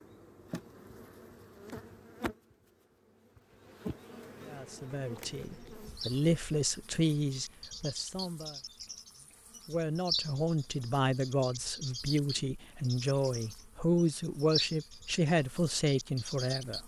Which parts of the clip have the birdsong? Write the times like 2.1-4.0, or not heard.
5.5-16.8.